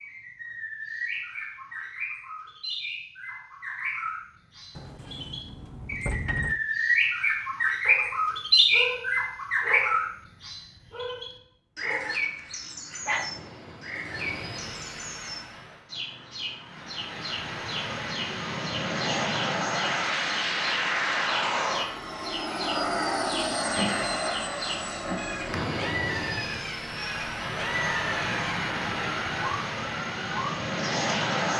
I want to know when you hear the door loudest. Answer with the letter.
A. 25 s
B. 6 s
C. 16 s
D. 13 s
B.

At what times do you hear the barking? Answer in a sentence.
The barking can be heard from 7.8 to 10.1 s, from 10.9 to 12.2 s and from 13.1 to 13.6 s.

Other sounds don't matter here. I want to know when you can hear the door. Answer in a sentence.
You can hear the door from 4.8 to 6.6 s.